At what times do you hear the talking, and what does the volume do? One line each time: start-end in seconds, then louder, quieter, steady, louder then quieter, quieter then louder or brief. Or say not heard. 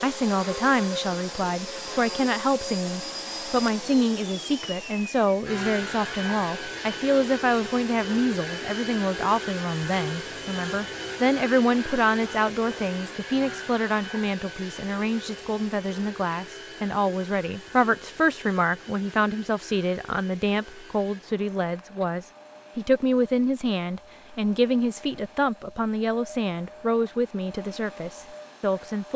0.0-29.1 steady.